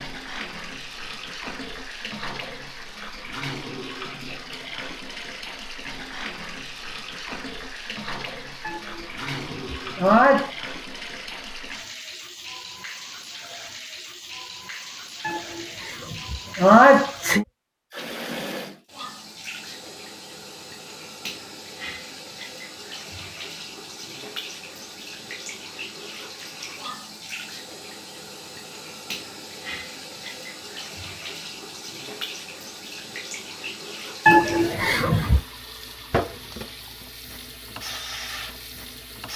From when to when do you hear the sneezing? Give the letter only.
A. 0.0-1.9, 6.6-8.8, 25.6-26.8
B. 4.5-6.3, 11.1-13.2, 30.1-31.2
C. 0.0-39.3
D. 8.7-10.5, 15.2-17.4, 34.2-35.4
D.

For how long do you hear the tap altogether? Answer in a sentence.
The tap can be heard for 39 seconds in total.